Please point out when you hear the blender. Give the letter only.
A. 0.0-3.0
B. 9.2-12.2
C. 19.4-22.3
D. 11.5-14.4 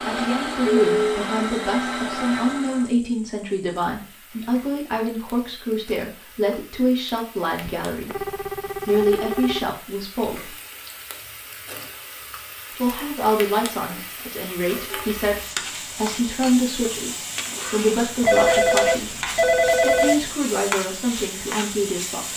A.